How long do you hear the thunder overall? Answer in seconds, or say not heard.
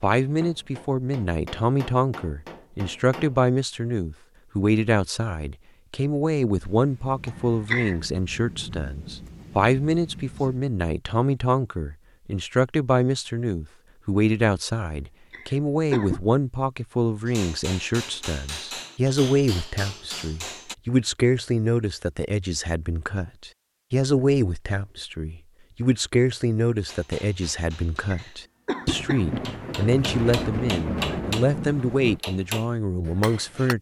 7 s.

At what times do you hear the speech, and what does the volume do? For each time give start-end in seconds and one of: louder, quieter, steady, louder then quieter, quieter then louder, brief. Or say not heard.
0.0-33.7 steady.